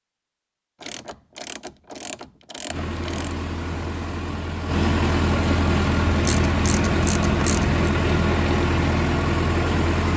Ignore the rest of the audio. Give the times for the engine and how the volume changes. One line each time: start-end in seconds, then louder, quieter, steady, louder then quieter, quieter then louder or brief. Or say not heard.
2.6-10.1 louder.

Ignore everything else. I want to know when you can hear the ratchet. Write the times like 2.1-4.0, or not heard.
0.8-3.4, 6.1-7.8.